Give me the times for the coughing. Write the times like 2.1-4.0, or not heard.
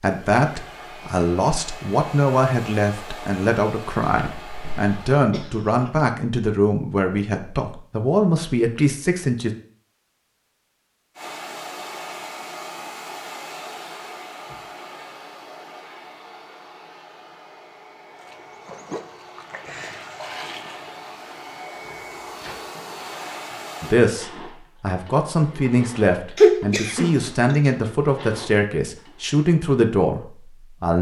4.1-6.0, 26.4-27.7.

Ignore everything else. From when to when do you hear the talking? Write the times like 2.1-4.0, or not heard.
0.0-9.5, 23.8-30.9.